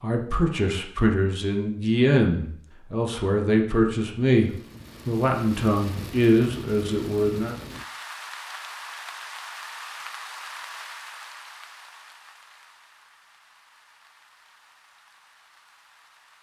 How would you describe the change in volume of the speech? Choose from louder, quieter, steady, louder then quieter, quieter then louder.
steady.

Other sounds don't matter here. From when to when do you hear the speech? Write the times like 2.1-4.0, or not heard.
0.0-7.5.